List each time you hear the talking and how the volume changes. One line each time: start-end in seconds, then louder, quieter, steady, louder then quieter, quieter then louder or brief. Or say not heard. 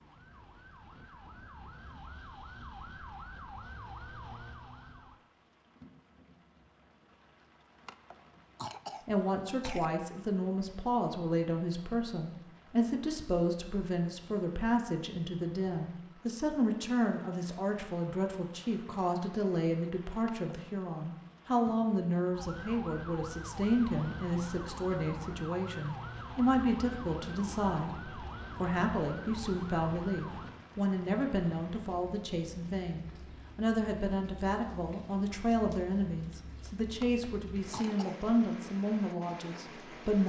9.1-40.2 steady.